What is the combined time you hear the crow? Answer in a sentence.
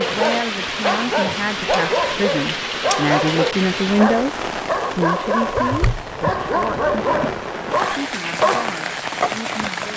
You can't hear the crow here.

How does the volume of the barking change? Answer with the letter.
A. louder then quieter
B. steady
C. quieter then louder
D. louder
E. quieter
B.